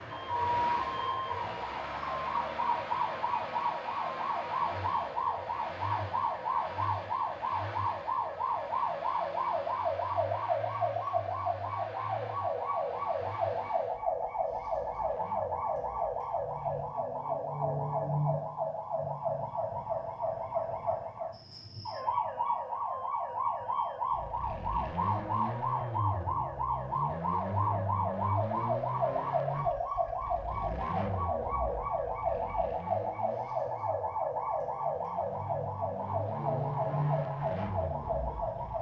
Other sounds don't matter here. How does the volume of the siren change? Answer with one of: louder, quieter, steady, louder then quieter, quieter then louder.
steady.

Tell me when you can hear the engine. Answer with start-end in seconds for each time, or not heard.
0.0-16.9, 24.1-38.7.